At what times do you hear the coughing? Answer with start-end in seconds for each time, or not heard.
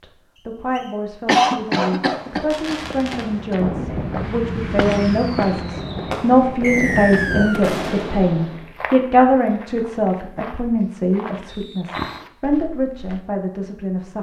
1.2-3.5.